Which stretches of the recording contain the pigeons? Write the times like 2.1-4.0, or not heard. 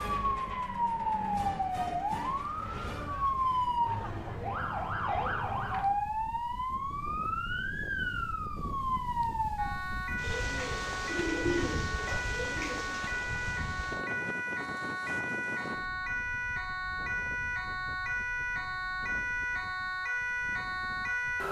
10.2-13.0.